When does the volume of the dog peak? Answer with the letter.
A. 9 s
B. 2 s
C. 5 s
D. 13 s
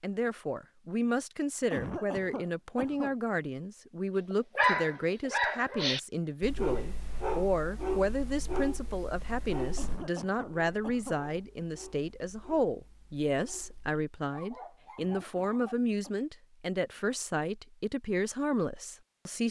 C.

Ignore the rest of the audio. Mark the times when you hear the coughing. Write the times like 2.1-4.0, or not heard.
1.7-3.1, 9.8-11.2, 14.9-16.1.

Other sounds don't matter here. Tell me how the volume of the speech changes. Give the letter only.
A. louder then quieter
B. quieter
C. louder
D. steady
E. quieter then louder
D.